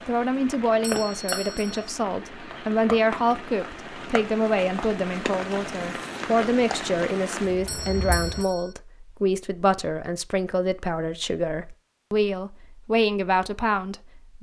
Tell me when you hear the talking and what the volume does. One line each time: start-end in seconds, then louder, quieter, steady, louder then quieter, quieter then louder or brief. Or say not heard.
0.1-14.3 steady.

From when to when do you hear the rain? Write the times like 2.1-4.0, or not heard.
0.0-8.4.